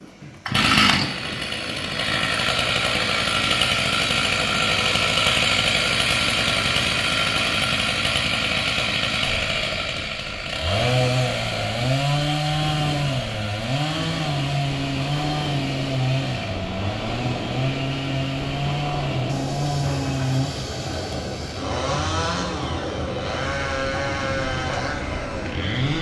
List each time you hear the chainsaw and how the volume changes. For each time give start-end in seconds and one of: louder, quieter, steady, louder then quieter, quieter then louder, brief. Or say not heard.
0.1-25.9 quieter.